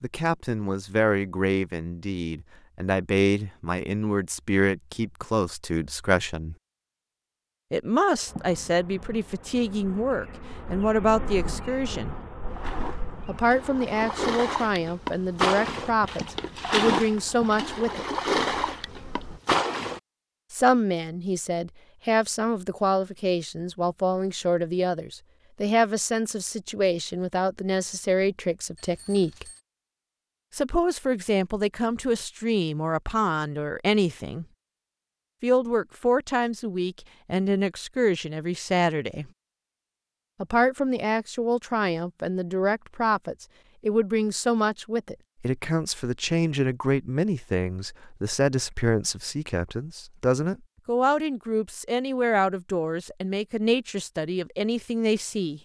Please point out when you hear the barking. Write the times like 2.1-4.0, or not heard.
not heard.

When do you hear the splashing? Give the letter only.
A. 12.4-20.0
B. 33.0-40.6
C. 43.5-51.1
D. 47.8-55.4
A.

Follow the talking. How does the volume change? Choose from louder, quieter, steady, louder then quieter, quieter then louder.
steady.